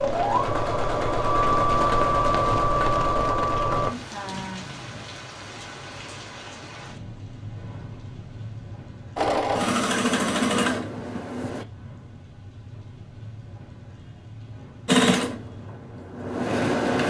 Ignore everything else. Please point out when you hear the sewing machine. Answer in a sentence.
You can hear the sewing machine from 0.0 to 3.9 s, from 9.2 to 11.7 s and from 14.8 to 17.0 s.